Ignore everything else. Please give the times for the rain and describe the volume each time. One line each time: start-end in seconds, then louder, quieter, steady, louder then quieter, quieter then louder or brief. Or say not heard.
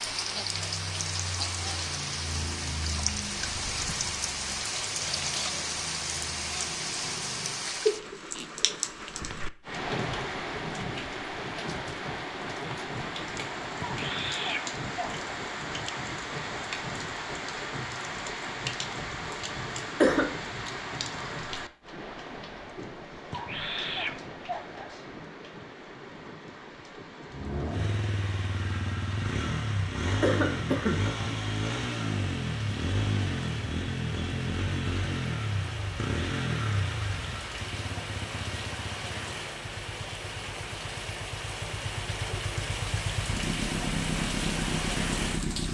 0.0-45.6 quieter then louder.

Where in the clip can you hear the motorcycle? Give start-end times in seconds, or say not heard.
0.0-7.8, 27.2-45.6.